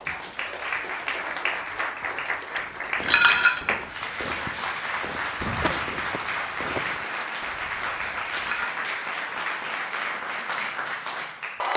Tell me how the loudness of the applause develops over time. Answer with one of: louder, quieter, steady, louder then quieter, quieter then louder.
steady.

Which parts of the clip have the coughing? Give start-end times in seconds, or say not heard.
5.6-7.0.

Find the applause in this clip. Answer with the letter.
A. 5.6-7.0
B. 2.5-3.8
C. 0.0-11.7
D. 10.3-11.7
C.